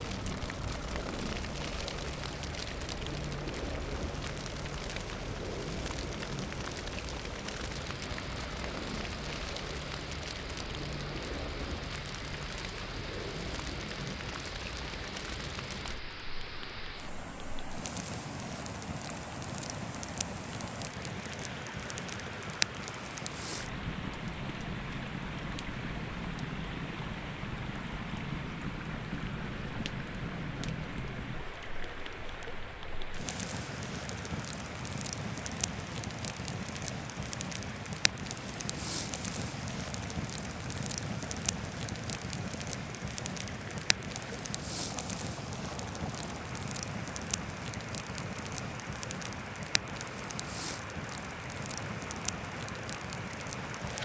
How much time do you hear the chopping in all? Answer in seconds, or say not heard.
not heard.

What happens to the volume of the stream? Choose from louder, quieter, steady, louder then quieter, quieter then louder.
steady.